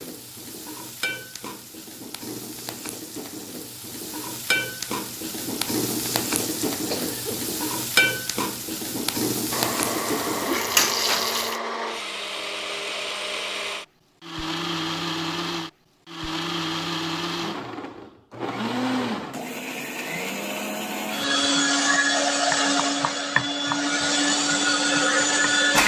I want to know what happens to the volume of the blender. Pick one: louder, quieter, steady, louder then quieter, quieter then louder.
louder.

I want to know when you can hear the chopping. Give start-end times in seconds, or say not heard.
22.3-25.8.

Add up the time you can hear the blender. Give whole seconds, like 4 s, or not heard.
16 s.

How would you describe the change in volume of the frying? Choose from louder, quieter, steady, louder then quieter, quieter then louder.
louder.